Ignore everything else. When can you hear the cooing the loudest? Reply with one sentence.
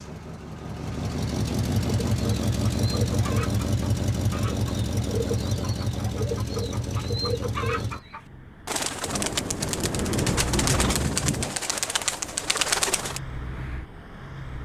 The volume of the cooing peaks at 13 seconds.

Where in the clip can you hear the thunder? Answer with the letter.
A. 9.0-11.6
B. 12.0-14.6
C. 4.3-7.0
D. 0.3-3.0
A.